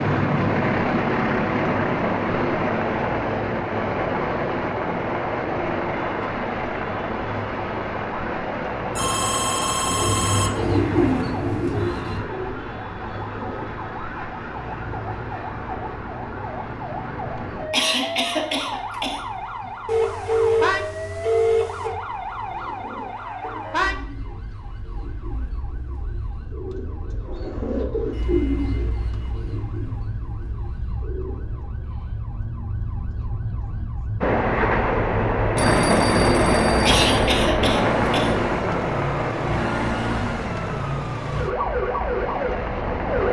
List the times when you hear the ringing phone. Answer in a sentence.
You can hear the ringing phone from 8.9 to 10.5 s, from 19.9 to 21.9 s and from 35.5 to 37.4 s.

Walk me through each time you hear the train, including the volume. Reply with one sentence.
You can hear the train from 0.0 to 11.2 s, getting quieter; and from 34.2 to 43.2 s, getting quieter.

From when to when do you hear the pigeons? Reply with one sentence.
You can hear the pigeons from 9.8 to 13.6 s and from 22.4 to 31.8 s.